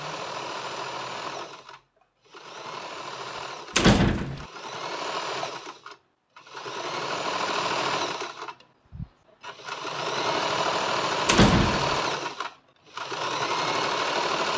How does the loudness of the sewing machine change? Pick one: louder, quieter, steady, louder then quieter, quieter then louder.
louder.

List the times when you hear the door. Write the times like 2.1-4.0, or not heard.
3.8-4.5, 11.2-12.0.